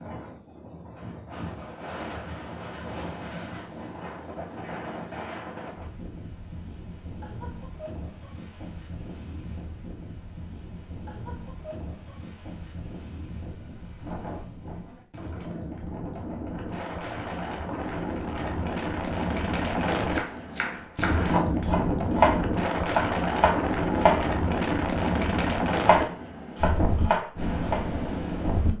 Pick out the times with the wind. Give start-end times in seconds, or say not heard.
0.0-28.7.